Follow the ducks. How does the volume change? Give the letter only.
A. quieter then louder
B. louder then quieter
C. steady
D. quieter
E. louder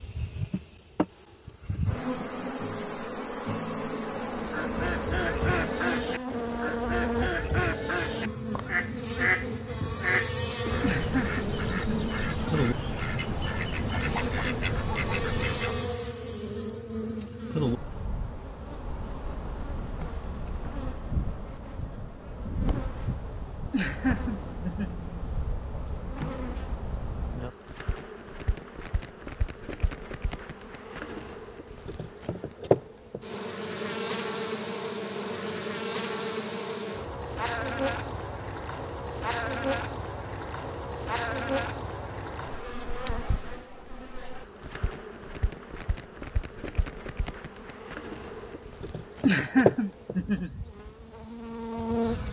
C.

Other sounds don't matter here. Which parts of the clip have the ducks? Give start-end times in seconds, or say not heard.
4.3-15.9.